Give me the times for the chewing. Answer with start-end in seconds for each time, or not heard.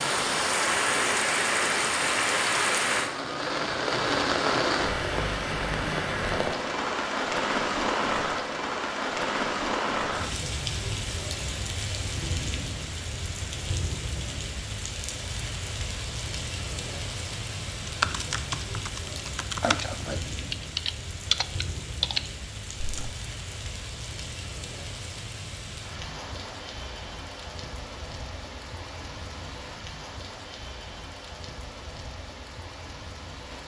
not heard.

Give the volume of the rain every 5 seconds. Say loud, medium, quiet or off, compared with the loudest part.
loud, loud, medium, medium, quiet, quiet, quiet.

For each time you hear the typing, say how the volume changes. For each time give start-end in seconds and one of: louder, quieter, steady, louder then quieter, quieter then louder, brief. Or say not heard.
17.9-23.1 louder.